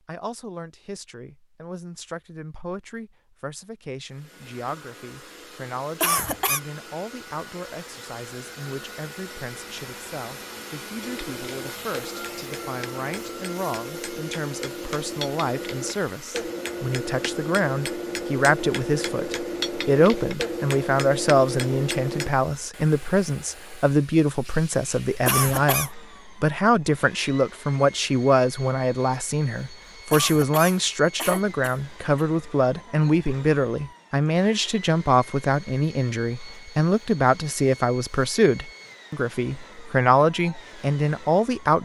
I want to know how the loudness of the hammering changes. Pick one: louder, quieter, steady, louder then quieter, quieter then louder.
louder.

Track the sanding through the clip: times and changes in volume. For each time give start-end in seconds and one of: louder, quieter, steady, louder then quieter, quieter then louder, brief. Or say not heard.
not heard.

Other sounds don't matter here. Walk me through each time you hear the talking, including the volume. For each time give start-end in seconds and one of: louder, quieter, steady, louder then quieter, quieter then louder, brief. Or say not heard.
0.1-41.8 louder.